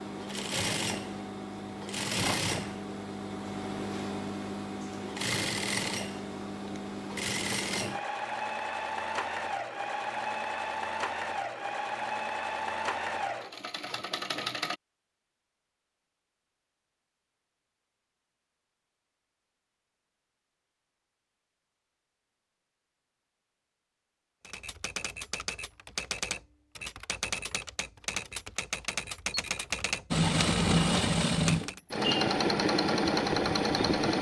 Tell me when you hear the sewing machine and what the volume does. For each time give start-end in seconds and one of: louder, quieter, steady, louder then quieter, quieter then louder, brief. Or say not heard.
0.0-14.8 steady
30.1-34.1 steady.